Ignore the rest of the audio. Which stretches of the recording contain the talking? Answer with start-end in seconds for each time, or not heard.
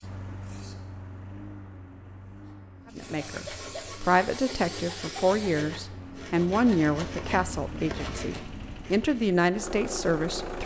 3.0-10.6.